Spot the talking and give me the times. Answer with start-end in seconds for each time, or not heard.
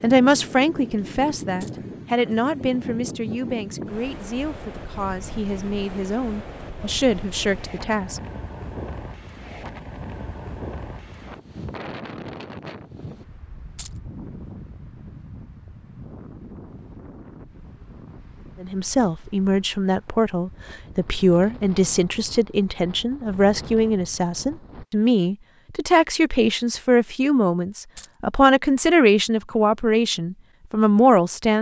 0.0-8.2, 18.6-31.5.